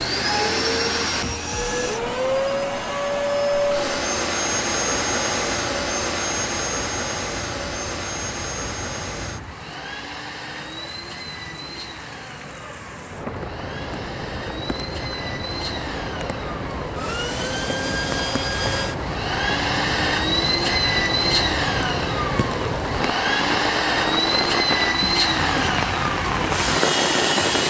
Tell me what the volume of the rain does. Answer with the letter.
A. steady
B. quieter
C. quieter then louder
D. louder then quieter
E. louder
E.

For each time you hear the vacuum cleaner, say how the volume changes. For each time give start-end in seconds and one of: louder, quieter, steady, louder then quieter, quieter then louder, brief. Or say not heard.
0.0-27.6 quieter then louder.